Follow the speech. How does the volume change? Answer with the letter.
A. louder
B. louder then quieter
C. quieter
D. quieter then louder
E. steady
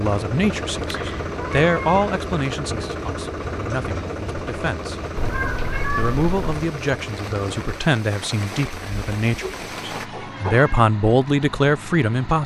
D.